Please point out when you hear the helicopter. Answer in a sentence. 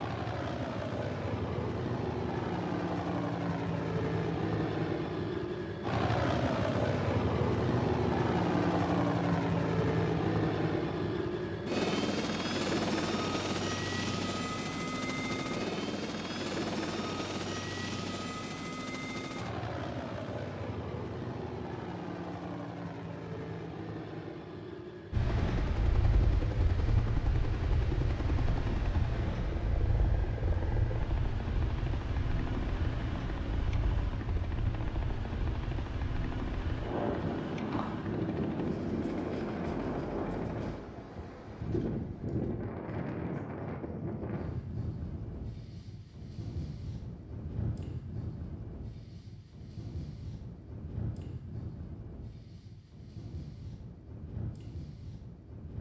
You can hear the helicopter from 0.0 to 40.8 s.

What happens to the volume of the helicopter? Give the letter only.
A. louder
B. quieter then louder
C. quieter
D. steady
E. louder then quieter
C.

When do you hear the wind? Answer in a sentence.
The wind can be heard from 25.1 to 55.7 s.